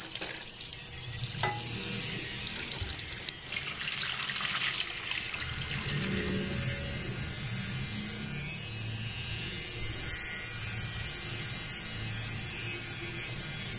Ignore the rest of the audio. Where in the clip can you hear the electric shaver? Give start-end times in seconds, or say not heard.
0.0-13.7.